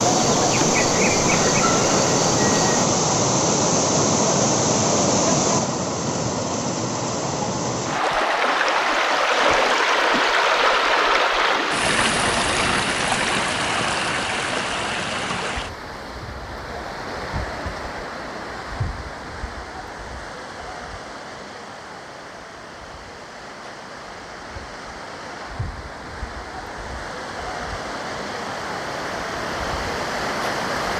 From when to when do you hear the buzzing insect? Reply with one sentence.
The buzzing insect can be heard from 0.1 to 2.8 s.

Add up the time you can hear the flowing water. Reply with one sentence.
You can hear the flowing water for 31 seconds altogether.